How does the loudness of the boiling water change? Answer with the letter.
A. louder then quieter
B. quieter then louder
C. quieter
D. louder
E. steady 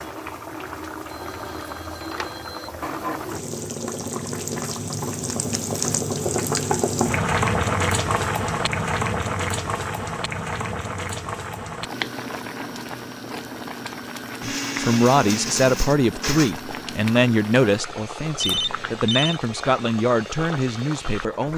A.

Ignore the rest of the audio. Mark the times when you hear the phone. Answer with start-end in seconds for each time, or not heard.
1.1-2.7, 18.4-19.4.